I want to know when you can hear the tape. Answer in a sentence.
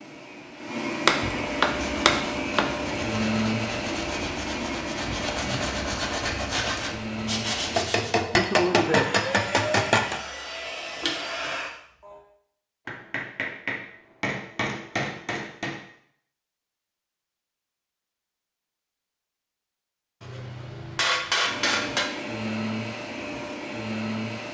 You can't hear the tape here.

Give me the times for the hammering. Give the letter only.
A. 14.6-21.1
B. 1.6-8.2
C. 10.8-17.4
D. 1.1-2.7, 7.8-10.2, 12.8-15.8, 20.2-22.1
D.